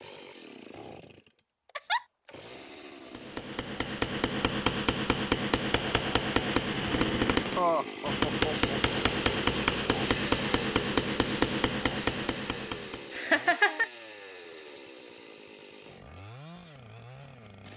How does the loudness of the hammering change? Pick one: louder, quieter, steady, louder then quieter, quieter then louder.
steady.